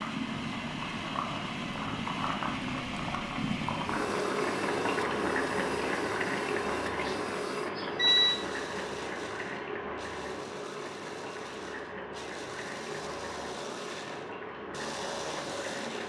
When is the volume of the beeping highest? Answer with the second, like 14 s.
8 s.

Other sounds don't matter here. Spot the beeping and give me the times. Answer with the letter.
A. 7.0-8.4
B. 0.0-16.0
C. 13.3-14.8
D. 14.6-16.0
A.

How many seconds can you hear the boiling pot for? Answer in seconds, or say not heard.
16 s.